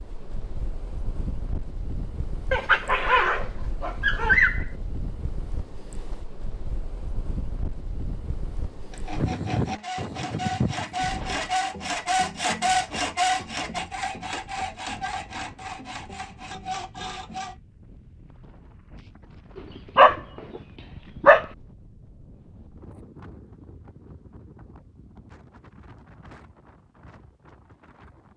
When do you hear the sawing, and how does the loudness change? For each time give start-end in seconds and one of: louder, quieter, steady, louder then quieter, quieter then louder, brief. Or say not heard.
8.9-17.6 louder then quieter.